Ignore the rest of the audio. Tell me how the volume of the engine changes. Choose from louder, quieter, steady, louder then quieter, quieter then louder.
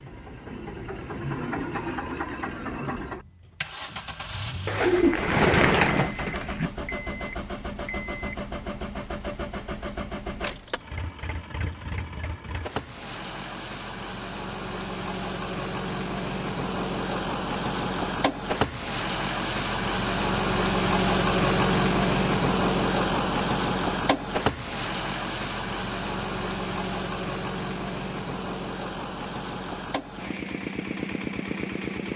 louder then quieter.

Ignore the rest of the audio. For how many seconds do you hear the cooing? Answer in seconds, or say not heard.
2 s.